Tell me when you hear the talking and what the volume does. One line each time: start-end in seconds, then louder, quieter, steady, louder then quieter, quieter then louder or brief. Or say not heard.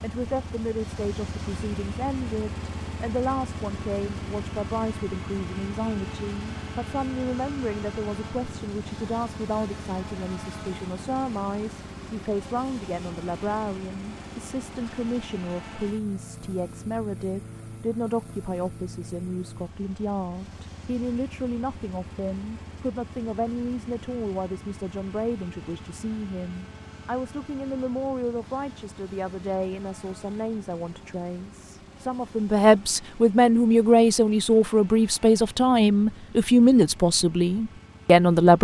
0.0-38.5 louder.